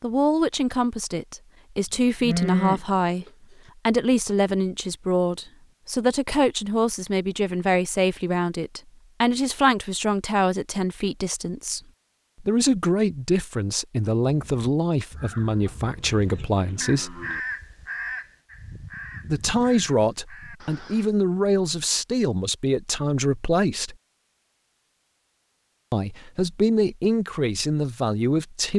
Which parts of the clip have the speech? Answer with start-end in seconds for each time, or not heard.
0.0-3.2, 3.9-11.8, 12.4-17.2, 19.2-23.9, 25.9-28.7.